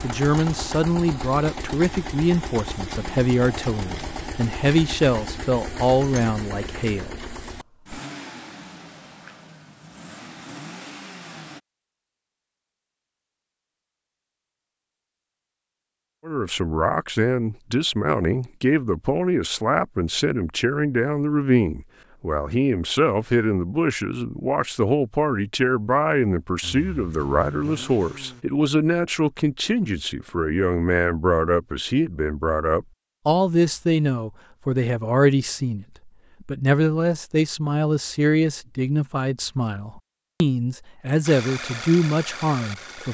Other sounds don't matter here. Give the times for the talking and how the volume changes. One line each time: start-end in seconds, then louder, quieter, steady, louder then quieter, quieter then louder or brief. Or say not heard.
0.0-7.3 steady
16.2-43.1 steady.